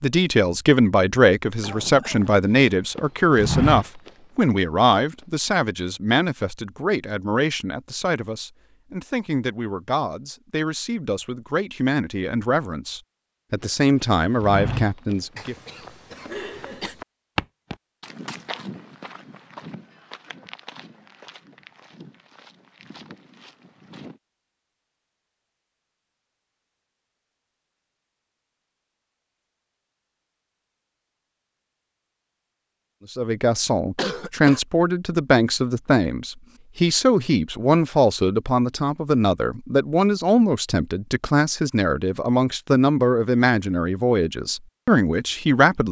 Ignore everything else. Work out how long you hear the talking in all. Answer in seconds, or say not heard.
28 s.